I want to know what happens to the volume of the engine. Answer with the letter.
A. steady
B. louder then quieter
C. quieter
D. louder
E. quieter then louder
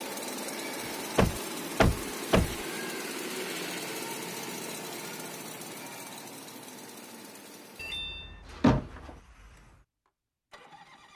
C.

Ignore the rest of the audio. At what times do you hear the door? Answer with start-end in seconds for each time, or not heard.
1.1-2.5, 7.8-9.2.